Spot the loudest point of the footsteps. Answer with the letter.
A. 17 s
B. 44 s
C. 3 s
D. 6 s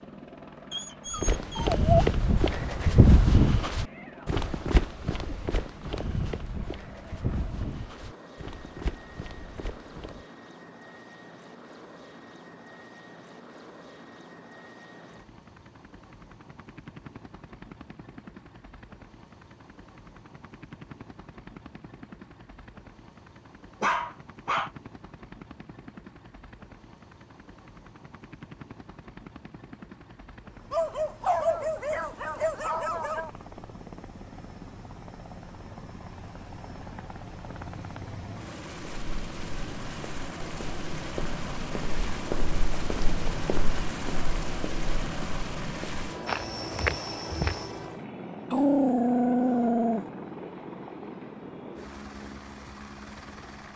C.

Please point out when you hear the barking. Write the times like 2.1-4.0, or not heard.
0.7-2.0, 23.8-24.7, 30.7-33.3, 48.5-50.0.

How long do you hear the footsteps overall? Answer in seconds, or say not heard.
18 s.